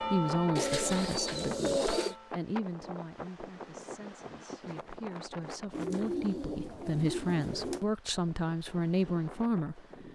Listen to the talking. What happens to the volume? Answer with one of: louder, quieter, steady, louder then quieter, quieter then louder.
quieter then louder.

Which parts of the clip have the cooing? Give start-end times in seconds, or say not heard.
0.6-2.1, 5.7-7.8.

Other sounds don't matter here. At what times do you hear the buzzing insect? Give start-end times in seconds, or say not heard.
not heard.